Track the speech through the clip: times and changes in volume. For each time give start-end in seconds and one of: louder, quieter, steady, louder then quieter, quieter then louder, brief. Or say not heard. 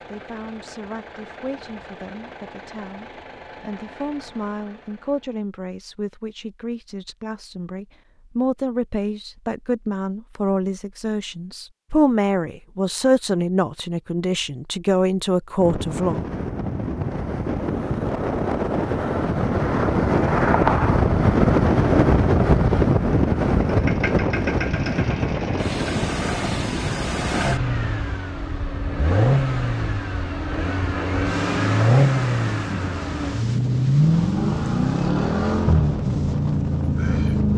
0.1-16.2 louder.